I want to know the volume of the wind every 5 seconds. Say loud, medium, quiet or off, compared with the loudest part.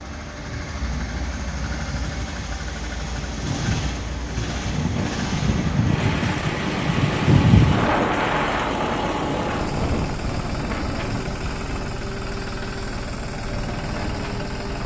medium, loud, medium.